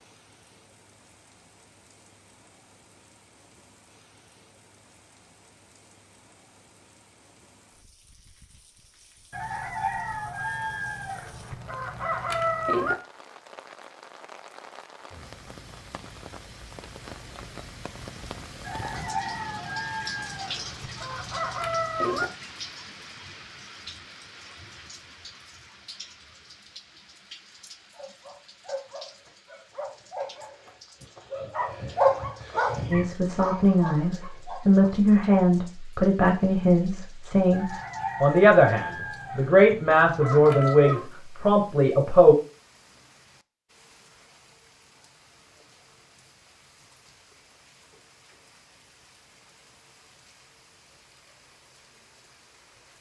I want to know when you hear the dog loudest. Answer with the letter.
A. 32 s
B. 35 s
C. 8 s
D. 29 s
A.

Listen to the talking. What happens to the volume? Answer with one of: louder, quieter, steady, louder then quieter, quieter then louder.
steady.